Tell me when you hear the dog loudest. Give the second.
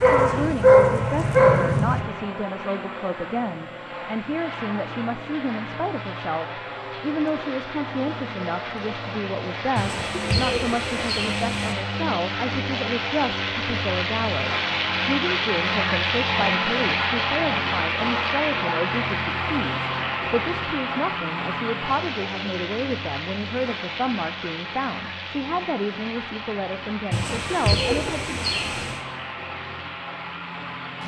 1 s.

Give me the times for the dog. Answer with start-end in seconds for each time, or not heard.
0.0-2.0.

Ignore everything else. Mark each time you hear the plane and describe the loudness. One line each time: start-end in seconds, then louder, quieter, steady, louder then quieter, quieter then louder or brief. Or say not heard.
0.0-31.0 louder then quieter.